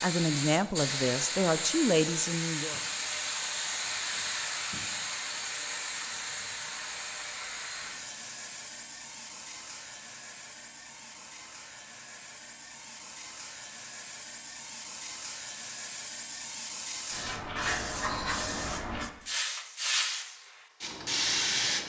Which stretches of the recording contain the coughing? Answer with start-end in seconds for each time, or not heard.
not heard.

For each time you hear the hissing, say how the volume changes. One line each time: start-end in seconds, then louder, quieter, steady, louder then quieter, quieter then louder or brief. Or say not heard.
0.0-21.8 quieter then louder.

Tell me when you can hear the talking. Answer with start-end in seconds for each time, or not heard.
0.0-2.8.